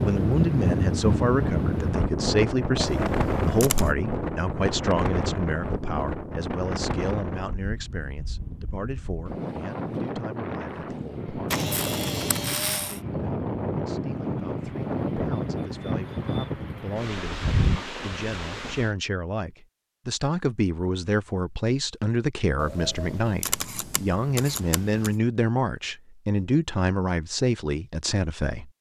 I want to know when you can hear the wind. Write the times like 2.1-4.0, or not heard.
0.0-18.9.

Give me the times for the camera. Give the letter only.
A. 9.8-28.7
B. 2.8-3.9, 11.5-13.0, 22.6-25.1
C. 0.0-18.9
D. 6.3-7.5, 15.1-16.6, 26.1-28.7
B.